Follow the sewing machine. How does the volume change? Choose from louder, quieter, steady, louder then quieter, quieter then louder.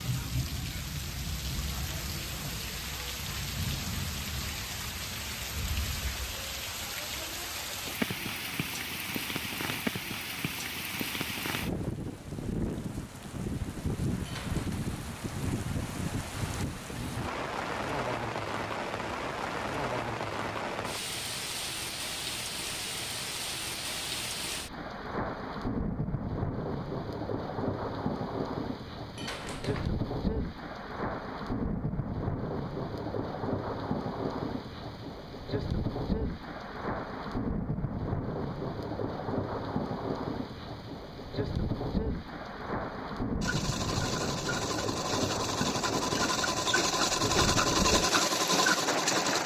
louder.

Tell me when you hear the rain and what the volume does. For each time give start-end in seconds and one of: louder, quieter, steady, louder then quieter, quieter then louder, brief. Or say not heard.
0.0-49.4 steady.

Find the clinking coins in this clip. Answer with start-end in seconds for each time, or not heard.
14.2-14.9, 29.1-29.9.